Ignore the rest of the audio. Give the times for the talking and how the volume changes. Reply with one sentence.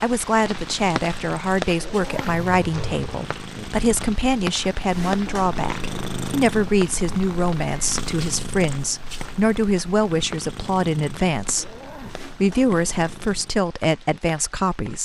You can hear the talking from 0.0 to 11.8 s, at a steady volume; and briefly from 12.4 to 15.0 s.